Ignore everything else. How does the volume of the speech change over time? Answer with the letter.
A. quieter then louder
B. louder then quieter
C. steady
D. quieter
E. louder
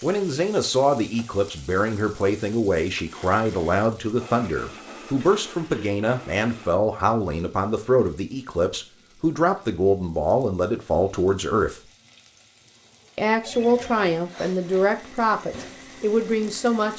C.